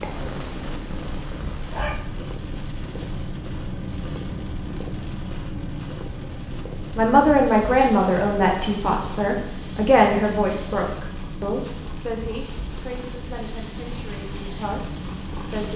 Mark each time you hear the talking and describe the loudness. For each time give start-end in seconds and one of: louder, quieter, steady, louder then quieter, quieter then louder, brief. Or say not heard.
7.0-15.7 quieter.